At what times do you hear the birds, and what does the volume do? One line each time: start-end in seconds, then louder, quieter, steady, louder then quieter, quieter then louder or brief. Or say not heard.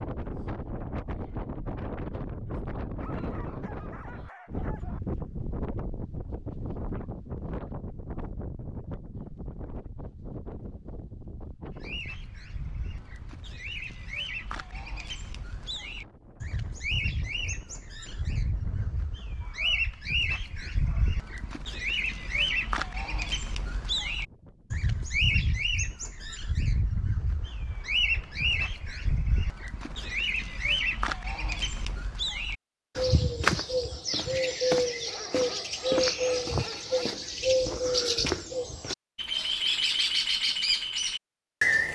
11.7-41.9 louder.